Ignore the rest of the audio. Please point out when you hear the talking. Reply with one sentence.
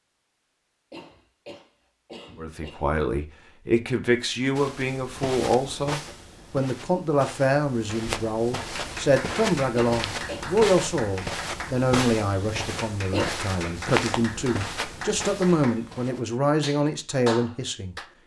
You can hear the talking from 2.4 to 17.9 s.